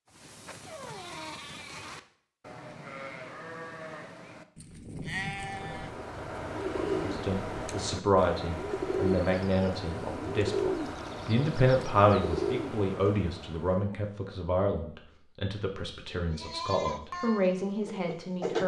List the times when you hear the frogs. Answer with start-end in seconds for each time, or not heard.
not heard.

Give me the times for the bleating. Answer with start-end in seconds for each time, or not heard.
0.1-6.0, 16.3-18.6.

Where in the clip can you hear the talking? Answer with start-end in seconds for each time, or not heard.
6.8-18.6.